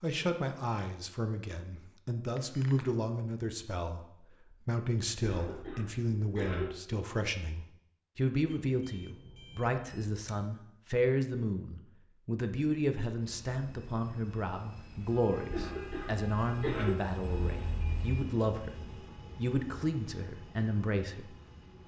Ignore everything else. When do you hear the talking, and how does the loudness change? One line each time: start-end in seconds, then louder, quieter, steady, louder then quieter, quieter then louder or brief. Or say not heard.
0.0-21.3 steady.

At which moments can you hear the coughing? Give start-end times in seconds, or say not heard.
5.2-6.7, 15.3-16.9.